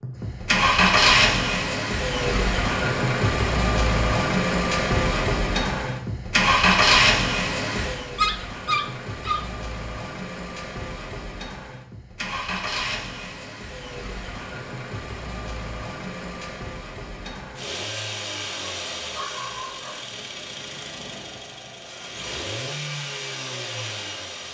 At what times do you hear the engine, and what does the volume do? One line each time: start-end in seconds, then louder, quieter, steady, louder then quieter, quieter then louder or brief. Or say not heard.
0.0-24.4 quieter.